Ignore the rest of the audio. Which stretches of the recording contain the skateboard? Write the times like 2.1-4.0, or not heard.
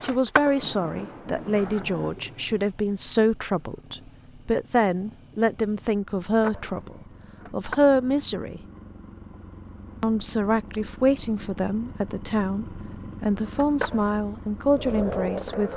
0.0-2.1, 6.4-8.2, 13.4-15.7.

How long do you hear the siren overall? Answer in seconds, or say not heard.
not heard.